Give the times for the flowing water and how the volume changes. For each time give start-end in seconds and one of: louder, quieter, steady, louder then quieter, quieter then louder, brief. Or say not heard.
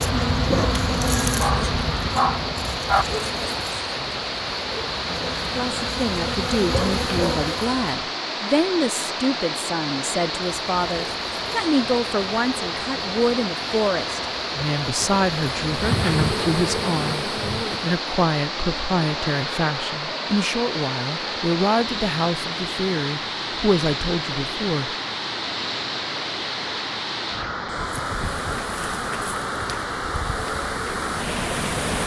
0.0-32.0 steady.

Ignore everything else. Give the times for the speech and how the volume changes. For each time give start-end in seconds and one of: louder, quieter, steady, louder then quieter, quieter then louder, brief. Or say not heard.
5.5-24.9 steady.